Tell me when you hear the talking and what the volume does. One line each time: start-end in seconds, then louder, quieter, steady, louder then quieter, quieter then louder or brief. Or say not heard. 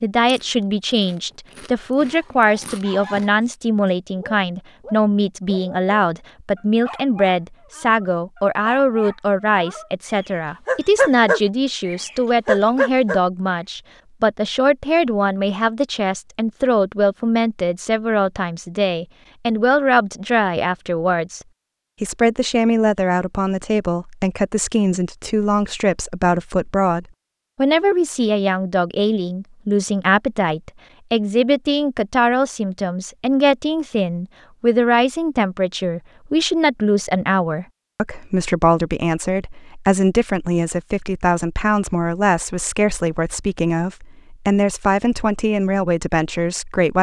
0.0-46.9 steady.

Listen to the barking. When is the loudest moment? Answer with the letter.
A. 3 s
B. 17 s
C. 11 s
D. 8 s
C.